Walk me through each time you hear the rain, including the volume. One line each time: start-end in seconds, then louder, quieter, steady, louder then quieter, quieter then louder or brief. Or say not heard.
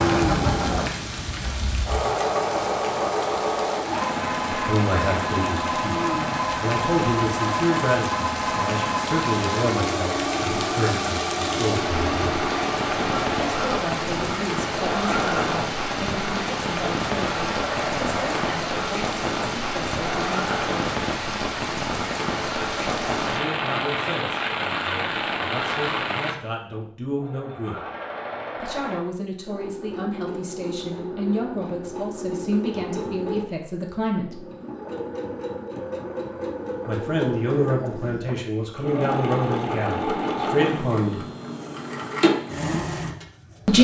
0.0-26.4 louder.